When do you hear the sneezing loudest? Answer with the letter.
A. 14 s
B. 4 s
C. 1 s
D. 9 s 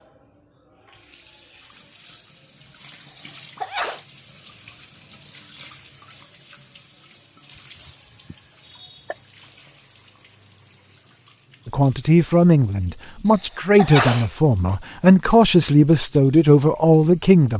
A.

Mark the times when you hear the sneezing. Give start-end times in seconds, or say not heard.
3.1-4.0, 7.8-9.2, 13.2-14.8.